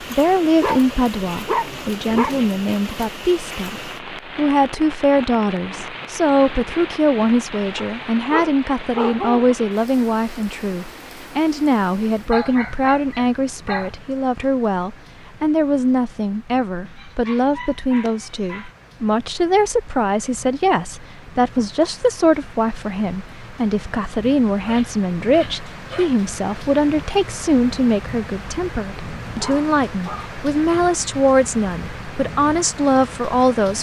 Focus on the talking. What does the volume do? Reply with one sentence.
The volume of the talking stays about the same.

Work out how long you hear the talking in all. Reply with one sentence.
The talking can be heard for 34 seconds in total.